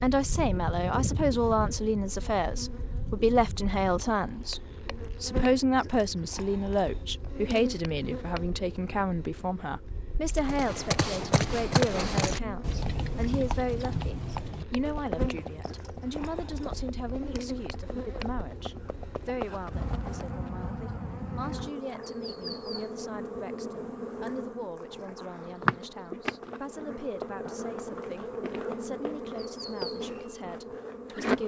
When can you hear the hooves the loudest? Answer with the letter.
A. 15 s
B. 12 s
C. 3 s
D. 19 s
B.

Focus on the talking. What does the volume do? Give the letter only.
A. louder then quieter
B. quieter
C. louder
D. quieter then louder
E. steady
B.